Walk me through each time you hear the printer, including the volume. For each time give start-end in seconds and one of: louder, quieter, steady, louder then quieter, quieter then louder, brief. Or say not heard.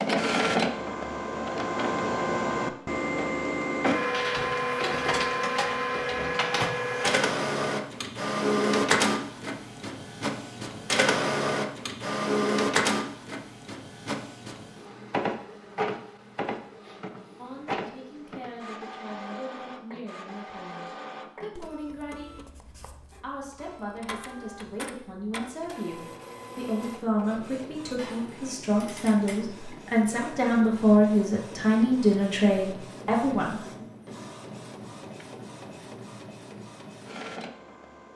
0.0-38.1 quieter.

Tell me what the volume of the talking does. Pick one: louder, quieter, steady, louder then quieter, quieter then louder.
louder.